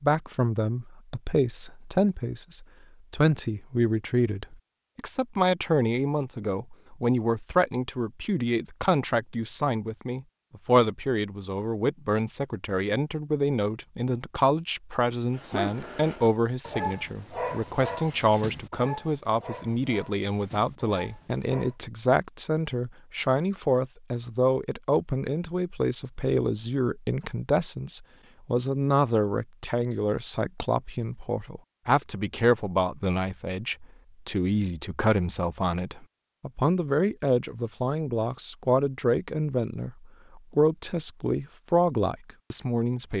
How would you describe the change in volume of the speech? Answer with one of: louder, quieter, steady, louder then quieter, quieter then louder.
steady.